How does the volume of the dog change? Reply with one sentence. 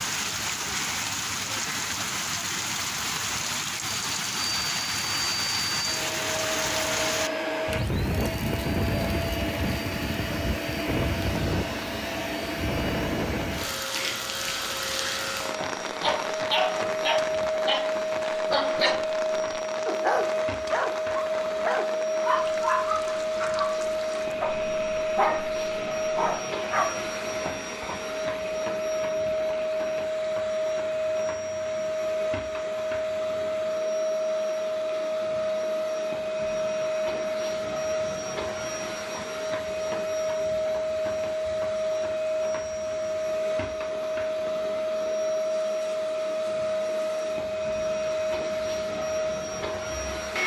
The volume of the dog stays about the same.